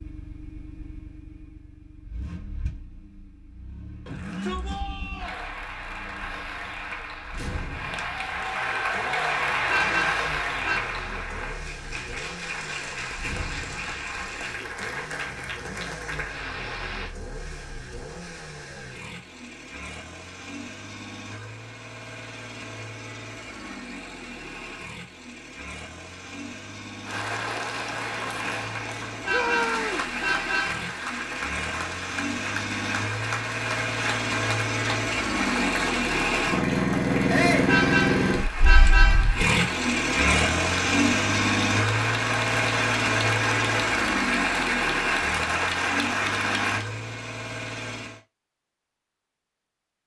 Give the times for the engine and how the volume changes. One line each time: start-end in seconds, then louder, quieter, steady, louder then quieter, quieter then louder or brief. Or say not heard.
0.0-48.2 louder.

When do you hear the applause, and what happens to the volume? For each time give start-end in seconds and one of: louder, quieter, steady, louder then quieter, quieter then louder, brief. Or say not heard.
5.2-17.1 louder then quieter
27.1-46.9 louder.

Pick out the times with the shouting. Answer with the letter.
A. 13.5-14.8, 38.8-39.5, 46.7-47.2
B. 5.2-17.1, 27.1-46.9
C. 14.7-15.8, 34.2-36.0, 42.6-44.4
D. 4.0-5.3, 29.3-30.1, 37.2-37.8
D.